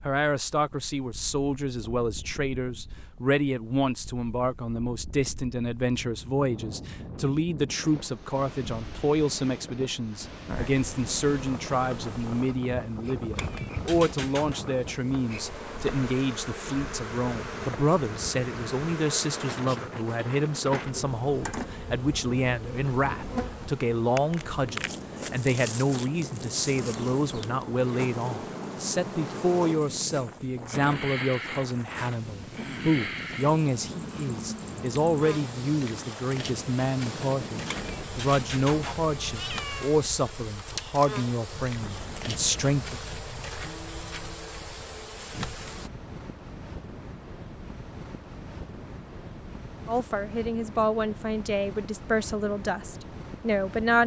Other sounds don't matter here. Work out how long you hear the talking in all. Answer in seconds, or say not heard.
47 s.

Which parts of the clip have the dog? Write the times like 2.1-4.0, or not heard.
not heard.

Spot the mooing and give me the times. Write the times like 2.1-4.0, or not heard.
43.6-45.6.